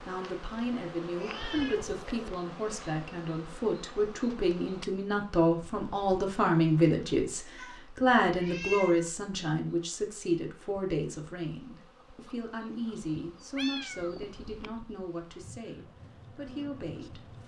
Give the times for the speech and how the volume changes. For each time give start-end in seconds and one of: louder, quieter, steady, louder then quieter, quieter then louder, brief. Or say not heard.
0.0-17.4 louder then quieter.